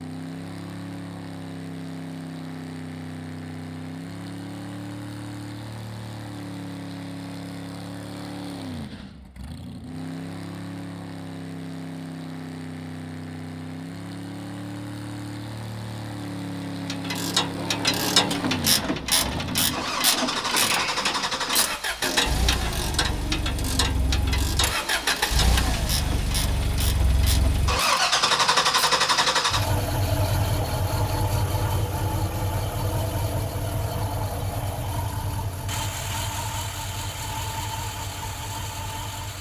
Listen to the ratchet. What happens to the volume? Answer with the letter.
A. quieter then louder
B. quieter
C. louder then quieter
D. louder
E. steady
B.